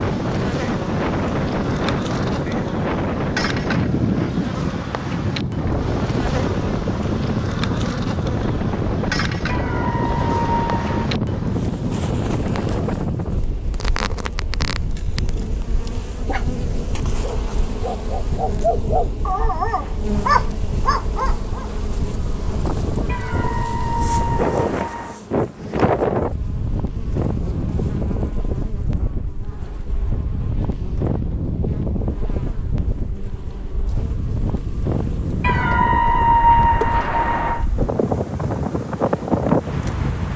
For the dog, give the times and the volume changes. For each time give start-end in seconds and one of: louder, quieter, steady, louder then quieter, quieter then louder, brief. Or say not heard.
14.9-21.7 louder.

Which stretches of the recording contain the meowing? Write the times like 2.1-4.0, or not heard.
9.4-11.1, 23.1-25.2, 35.4-37.6.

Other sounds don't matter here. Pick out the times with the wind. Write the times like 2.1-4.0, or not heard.
0.0-40.3.